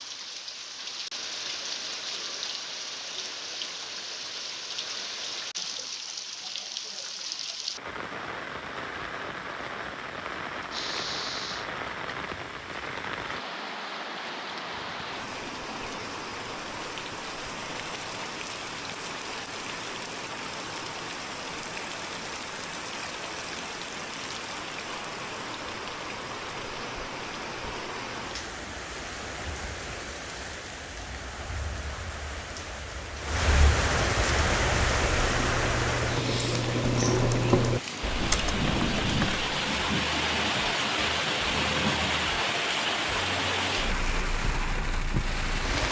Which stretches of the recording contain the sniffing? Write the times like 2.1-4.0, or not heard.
10.7-11.7.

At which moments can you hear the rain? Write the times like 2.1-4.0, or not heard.
0.0-45.8.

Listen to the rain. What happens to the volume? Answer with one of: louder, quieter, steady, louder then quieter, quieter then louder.
louder.